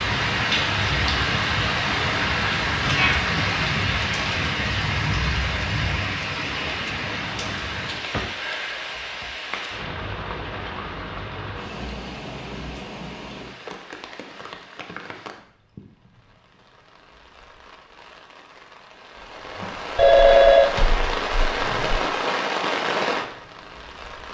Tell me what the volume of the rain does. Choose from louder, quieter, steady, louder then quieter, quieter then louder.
quieter then louder.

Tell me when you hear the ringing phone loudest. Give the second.
20 s.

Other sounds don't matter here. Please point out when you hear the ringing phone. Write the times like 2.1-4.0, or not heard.
19.9-22.0.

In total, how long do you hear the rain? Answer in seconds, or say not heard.
24 s.